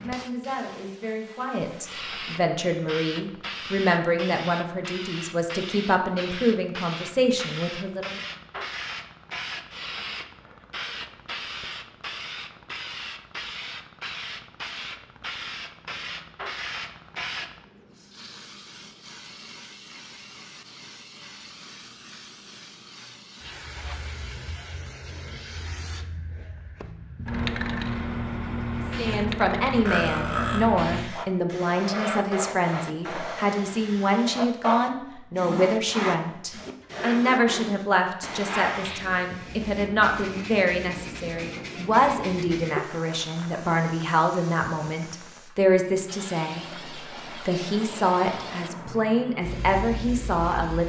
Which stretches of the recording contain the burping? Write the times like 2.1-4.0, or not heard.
29.9-30.7.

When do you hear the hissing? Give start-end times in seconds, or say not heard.
0.0-50.8.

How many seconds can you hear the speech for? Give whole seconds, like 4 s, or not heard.
30 s.